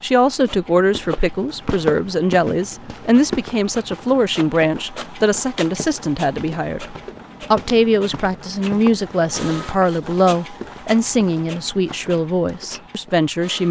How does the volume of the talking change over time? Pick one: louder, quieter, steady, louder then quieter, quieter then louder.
steady.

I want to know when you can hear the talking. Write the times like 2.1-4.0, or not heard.
0.0-13.6.